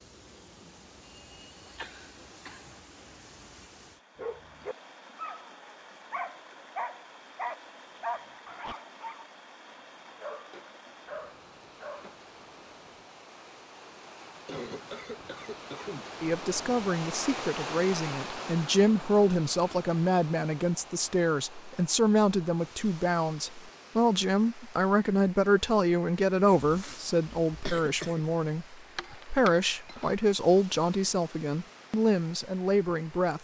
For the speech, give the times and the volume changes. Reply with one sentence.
The speech can be heard from 16.2 to 33.3 s, at a steady volume.